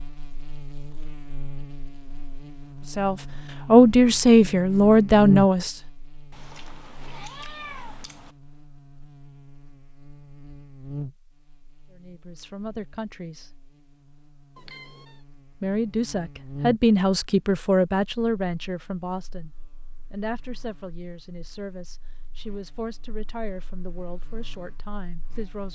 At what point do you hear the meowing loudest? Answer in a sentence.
The loudest moment of the meowing is at 8 seconds.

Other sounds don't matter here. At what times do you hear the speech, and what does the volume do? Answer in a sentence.
The speech can be heard briefly from 2.9 to 5.8 s; briefly from 11.9 to 13.5 s; and from 15.6 to 25.7 s, getting quieter.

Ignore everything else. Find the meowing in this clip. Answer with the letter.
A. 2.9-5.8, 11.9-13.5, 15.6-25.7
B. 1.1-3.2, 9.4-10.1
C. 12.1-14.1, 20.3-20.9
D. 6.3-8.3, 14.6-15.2
D.